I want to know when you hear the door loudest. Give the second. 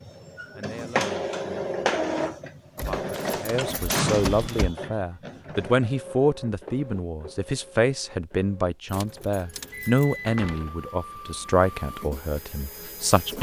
4 s.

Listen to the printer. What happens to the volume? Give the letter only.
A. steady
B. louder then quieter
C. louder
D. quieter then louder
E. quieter
D.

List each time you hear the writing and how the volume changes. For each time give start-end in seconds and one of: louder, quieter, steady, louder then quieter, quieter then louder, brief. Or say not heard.
not heard.